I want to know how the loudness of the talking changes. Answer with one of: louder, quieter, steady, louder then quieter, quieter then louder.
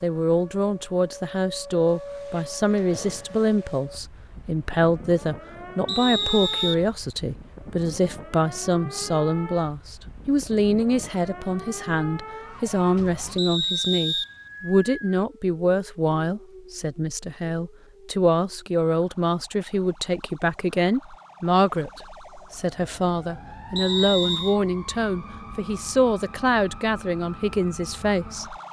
steady.